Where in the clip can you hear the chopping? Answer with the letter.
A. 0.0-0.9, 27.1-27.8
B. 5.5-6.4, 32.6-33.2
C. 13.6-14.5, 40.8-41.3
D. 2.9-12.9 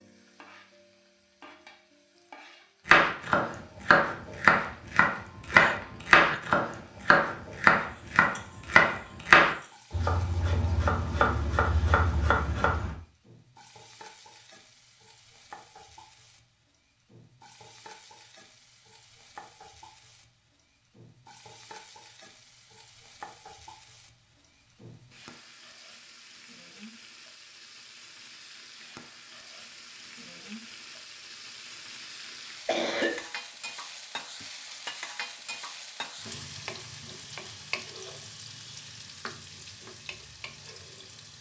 D.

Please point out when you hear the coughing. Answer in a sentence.
The coughing can be heard from 5.5 to 6.4 s and from 32.6 to 33.2 s.